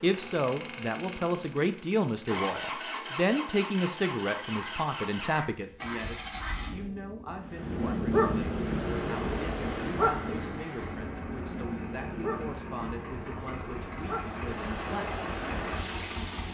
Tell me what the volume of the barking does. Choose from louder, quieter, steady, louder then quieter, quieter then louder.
louder then quieter.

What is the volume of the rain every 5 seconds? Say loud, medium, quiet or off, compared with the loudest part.
off, loud, medium, loud.